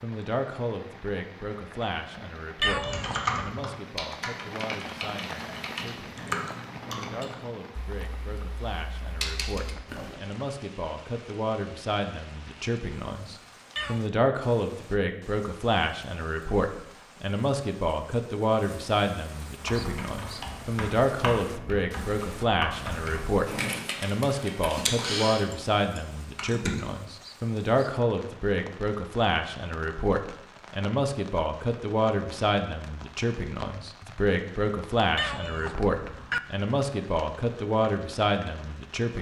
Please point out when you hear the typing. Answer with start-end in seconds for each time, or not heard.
2.8-10.2, 19.6-26.9.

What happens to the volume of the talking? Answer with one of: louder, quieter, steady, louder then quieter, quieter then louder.
louder.